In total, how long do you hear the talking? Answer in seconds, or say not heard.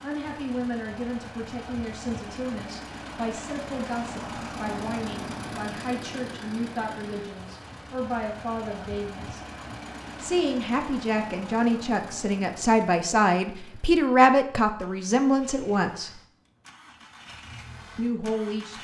16 s.